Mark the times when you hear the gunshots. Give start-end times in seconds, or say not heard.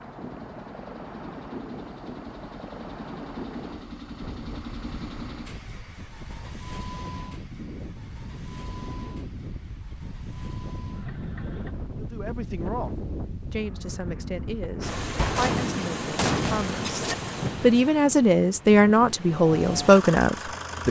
15.2-17.1.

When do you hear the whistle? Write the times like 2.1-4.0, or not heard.
not heard.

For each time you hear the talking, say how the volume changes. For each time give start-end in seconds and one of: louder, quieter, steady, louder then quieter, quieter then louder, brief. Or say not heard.
11.9-20.8 louder.